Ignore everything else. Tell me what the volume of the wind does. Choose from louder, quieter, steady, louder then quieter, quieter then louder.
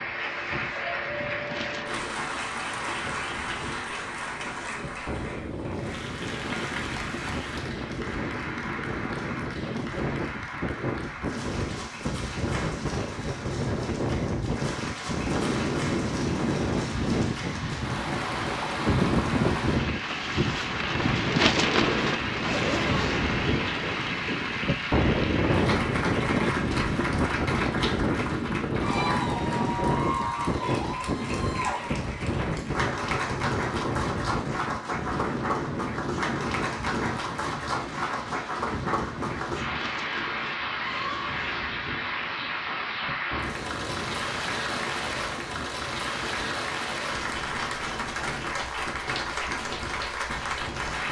louder then quieter.